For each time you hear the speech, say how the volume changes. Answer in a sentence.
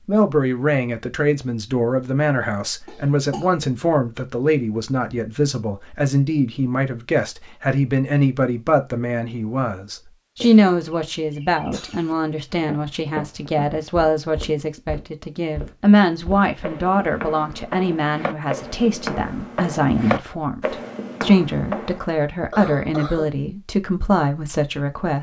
You can hear the speech from 0.1 to 25.1 s, at a steady volume.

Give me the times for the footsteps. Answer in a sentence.
The footsteps can be heard from 12.5 to 22.1 s.